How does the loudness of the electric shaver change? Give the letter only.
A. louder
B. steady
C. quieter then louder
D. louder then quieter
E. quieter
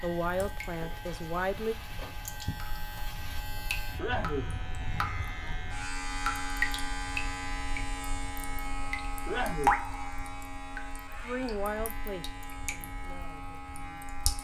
D.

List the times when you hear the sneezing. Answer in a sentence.
The sneezing can be heard from 4.0 to 4.5 s and from 9.2 to 9.8 s.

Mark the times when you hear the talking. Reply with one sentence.
The talking can be heard from 0.0 to 1.8 s and from 11.2 to 14.0 s.